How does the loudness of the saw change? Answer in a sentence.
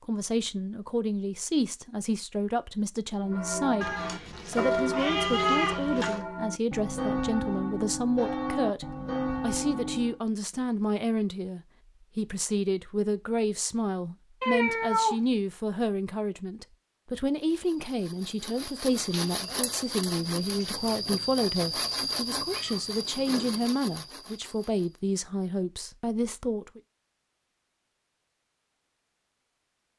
The loudness of the saw goes up, then down.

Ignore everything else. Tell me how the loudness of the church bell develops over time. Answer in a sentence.
The volume of the church bell stays about the same.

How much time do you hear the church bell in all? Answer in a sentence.
The church bell can be heard for 7 seconds in total.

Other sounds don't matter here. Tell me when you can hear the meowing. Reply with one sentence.
You can hear the meowing from 3.8 to 6.2 s, from 14.4 to 15.2 s and from 22.5 to 23.8 s.